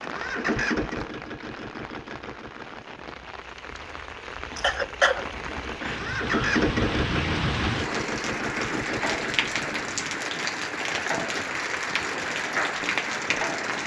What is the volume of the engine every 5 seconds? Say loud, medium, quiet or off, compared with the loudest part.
loud, loud, off.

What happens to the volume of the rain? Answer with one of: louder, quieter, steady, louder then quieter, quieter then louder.
louder.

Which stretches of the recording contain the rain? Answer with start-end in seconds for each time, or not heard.
0.0-13.8.